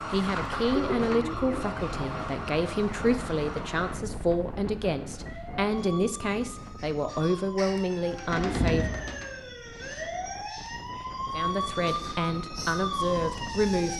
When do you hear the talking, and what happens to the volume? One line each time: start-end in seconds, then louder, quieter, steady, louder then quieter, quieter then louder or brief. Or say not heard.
0.1-8.9 steady
11.3-13.9 brief.